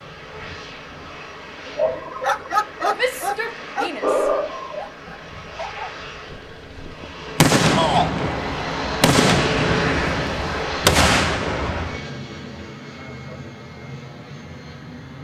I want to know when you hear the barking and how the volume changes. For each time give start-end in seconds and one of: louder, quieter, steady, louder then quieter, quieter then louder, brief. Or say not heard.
1.6-7.1 quieter.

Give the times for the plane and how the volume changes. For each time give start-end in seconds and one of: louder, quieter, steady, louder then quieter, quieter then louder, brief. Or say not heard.
0.0-15.1 louder then quieter.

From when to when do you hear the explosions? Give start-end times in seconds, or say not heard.
7.3-12.0.